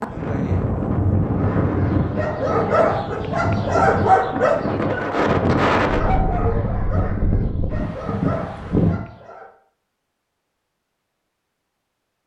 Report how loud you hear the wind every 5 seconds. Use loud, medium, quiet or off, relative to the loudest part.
loud, loud, off.